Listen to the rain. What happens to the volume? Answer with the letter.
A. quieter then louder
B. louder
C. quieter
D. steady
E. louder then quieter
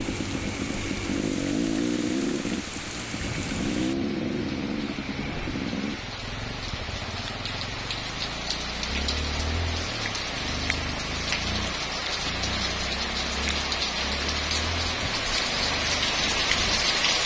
B.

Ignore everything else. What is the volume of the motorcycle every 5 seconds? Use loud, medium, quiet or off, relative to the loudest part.
loud, medium, medium, quiet.